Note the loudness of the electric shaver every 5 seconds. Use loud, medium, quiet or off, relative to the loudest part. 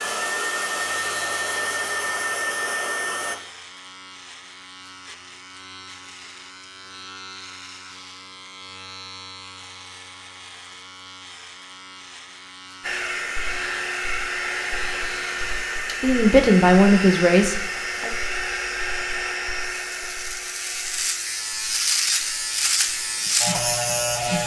quiet, quiet, quiet, quiet, loud.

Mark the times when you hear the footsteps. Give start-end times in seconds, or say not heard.
not heard.